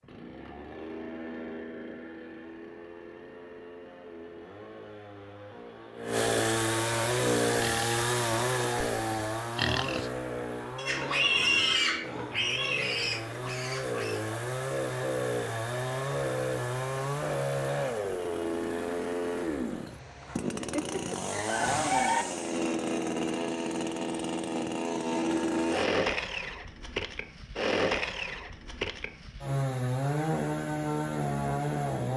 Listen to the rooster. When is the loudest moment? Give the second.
22 s.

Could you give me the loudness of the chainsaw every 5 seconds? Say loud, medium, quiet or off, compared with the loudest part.
quiet, loud, medium, loud, loud, loud, loud.